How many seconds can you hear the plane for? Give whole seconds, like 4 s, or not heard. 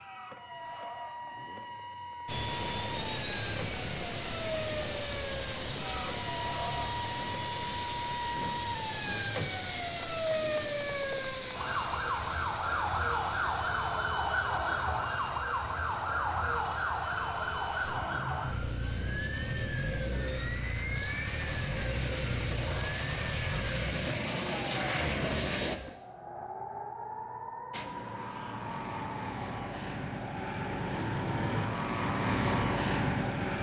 29 s.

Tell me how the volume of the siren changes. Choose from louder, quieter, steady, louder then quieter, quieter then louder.
louder then quieter.